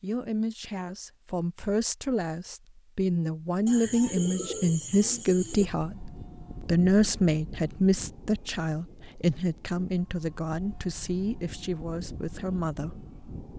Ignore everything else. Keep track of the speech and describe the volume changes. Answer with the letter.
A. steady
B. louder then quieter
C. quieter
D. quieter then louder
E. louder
B.